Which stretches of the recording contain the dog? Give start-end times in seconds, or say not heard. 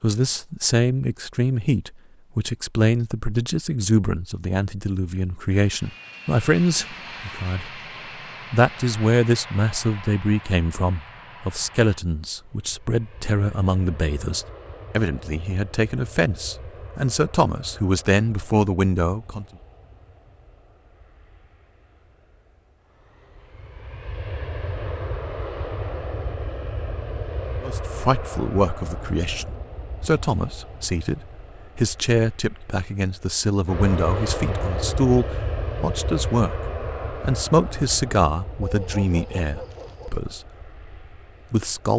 38.6-40.2.